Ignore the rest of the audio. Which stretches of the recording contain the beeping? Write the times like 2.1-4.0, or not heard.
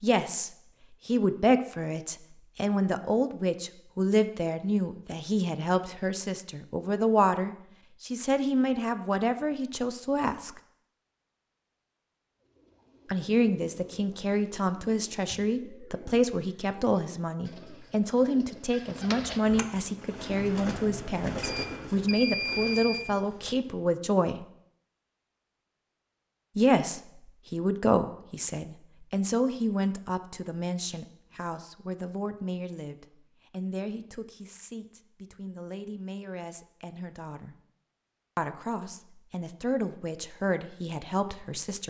21.4-23.1.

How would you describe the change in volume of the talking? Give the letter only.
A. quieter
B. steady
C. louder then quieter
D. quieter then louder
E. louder
A.